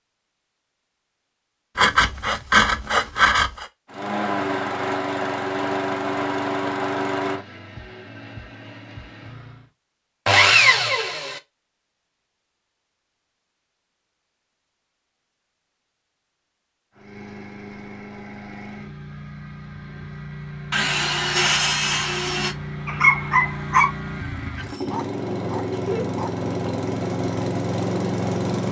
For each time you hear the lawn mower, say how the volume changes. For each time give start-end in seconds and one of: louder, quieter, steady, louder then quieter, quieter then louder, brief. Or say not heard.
3.9-9.7 quieter
16.9-28.6 louder.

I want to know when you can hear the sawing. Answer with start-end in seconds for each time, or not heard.
1.8-3.6, 10.2-11.4, 20.7-22.6.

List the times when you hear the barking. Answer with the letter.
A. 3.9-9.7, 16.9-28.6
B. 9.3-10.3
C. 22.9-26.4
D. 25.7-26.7
C.